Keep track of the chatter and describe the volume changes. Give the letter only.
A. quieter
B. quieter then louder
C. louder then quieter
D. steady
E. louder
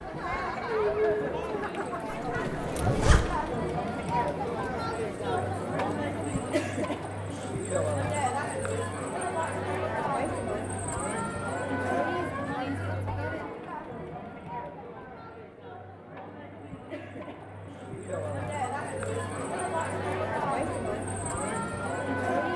B.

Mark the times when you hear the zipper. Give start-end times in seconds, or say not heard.
2.1-3.3.